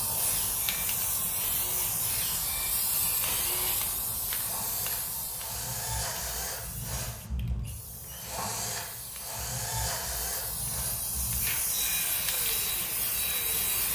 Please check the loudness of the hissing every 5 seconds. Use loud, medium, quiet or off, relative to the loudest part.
loud, medium, loud.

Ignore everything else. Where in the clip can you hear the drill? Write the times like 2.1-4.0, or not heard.
0.0-13.8.